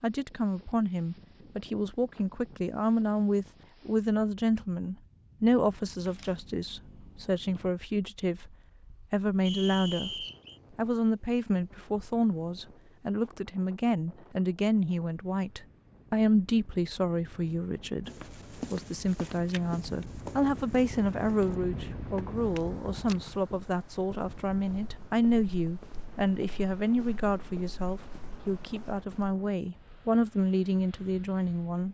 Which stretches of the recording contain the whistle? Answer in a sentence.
The whistle can be heard from 9.4 to 10.6 s.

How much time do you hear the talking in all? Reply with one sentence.
The talking can be heard for 31 seconds in total.